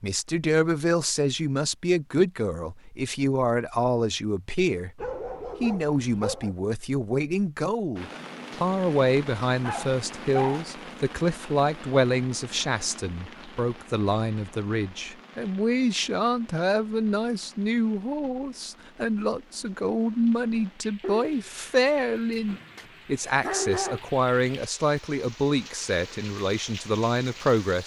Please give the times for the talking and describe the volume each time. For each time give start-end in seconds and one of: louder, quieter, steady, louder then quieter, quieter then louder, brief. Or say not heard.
0.0-5.0 steady
5.6-27.8 steady.